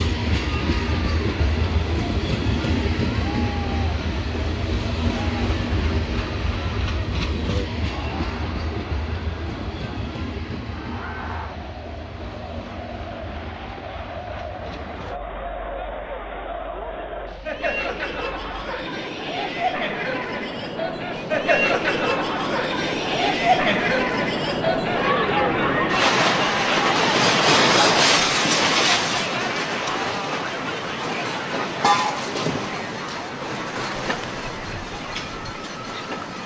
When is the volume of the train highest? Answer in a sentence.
The loudest moment of the train is at 28 seconds.